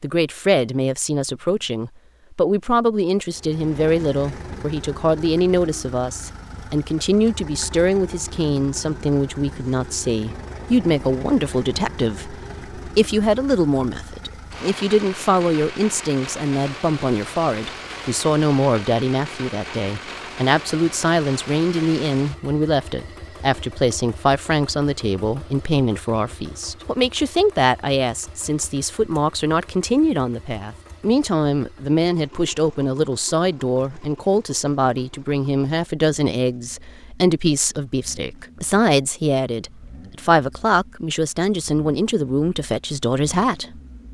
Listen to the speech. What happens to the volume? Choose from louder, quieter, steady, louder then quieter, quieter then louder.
steady.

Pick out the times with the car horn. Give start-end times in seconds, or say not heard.
not heard.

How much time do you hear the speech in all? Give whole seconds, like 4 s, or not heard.
44 s.